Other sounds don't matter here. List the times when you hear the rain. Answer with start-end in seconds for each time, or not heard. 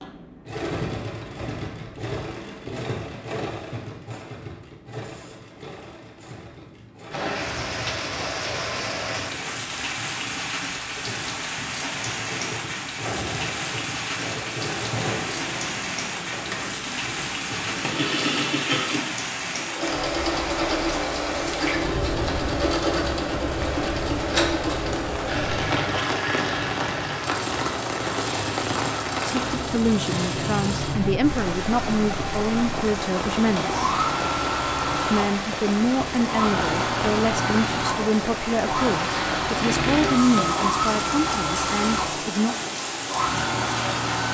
7.1-44.2.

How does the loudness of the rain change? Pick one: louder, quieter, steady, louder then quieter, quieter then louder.
steady.